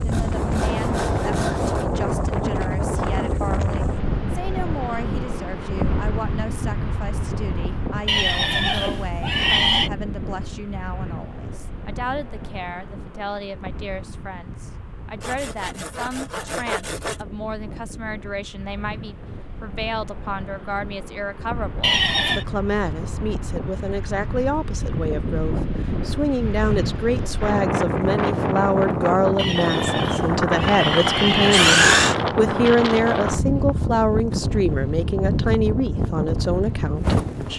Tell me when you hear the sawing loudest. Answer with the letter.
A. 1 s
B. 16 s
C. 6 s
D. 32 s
D.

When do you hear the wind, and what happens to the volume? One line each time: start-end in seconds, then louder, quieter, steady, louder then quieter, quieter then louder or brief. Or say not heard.
0.0-37.5 quieter then louder.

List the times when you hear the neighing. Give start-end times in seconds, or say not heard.
8.1-9.9, 21.8-22.4, 29.4-31.9.